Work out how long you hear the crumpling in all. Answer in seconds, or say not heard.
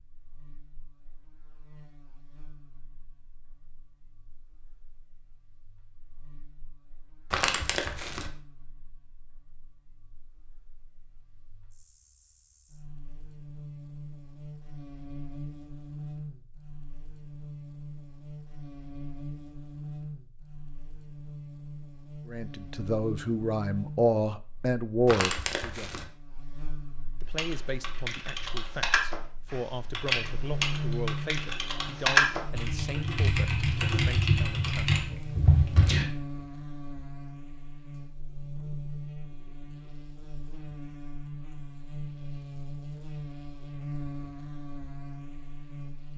2 s.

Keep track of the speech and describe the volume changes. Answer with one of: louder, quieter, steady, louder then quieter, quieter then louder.
quieter.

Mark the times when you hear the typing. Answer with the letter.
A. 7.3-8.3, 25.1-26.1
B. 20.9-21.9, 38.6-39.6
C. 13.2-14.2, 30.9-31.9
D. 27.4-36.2
D.